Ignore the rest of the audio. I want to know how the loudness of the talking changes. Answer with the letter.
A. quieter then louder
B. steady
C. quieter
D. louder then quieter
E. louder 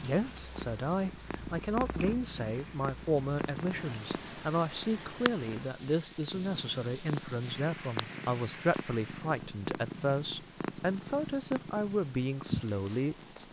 B.